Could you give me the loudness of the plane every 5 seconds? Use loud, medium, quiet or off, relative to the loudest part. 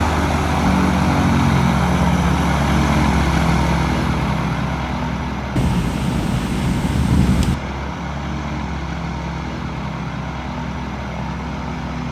loud, medium, medium.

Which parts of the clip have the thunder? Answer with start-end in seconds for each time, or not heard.
5.5-7.5.